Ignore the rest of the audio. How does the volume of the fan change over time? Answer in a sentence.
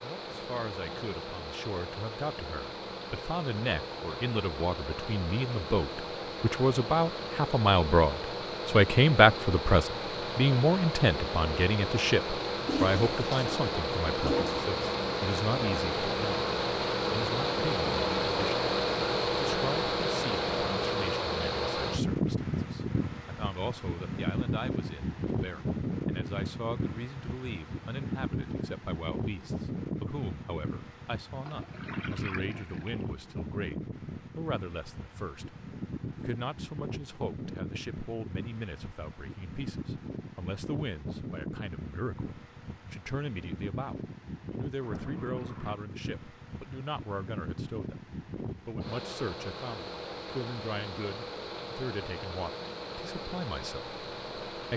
The volume of the fan goes up, then down.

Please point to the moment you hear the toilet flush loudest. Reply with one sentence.
The volume of the toilet flush peaks at 13 seconds.